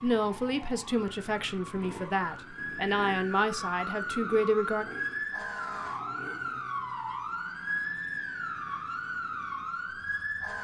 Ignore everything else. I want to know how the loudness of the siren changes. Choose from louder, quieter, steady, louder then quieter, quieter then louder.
louder.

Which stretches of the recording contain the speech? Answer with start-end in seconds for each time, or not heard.
0.0-4.8.